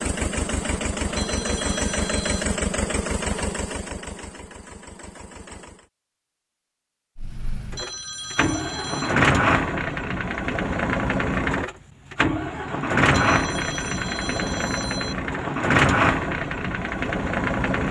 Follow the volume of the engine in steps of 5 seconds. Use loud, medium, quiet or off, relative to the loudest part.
medium, loud, loud, loud.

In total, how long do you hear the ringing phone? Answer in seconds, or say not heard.
5 s.